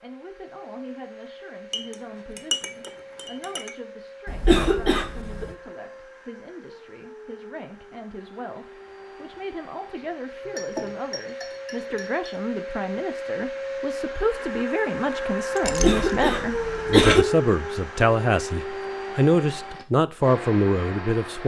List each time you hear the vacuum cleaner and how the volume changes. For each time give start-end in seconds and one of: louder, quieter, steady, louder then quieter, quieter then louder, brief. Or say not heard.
0.0-21.4 louder.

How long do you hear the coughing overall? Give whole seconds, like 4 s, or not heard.
3 s.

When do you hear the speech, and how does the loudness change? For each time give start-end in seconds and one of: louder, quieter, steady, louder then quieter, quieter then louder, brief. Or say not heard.
0.0-21.4 louder.